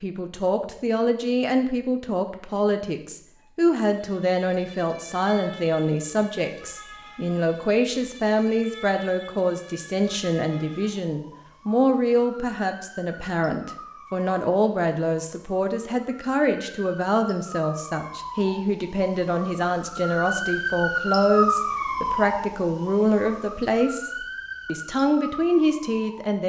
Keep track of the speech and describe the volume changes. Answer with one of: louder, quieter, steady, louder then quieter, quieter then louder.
steady.